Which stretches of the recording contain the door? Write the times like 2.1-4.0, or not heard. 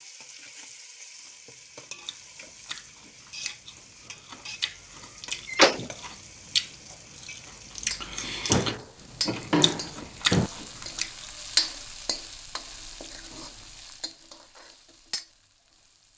5.5-5.9, 8.4-10.5.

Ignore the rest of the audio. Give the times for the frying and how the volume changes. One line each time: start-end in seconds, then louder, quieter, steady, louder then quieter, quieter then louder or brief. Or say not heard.
0.0-16.1 louder then quieter.